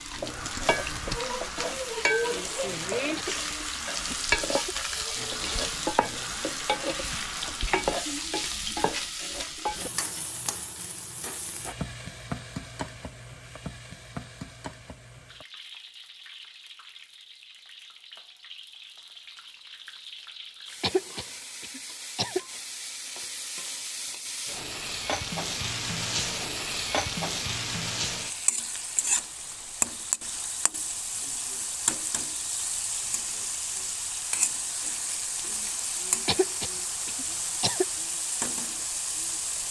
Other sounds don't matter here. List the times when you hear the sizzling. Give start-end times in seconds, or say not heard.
0.0-39.6.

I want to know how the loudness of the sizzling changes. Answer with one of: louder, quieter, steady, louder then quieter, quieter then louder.
quieter then louder.